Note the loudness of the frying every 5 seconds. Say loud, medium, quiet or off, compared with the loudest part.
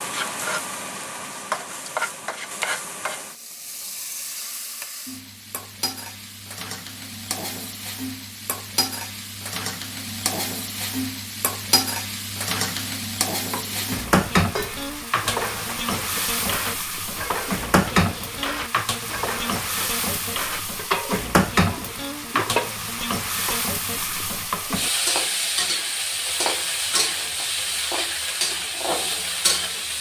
medium, medium, loud, loud, loud, loud.